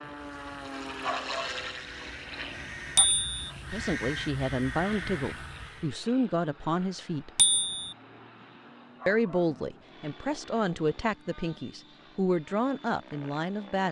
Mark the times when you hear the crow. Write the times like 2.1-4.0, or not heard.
0.0-6.0.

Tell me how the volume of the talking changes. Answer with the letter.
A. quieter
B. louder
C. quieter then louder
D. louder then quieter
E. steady
E.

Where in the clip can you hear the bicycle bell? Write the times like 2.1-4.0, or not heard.
3.0-3.5, 7.3-8.0.